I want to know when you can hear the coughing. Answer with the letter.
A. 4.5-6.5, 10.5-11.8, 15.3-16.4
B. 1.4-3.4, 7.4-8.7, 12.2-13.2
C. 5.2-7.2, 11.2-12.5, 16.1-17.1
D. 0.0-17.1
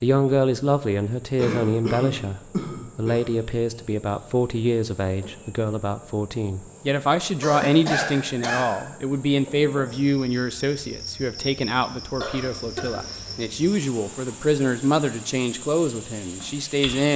B.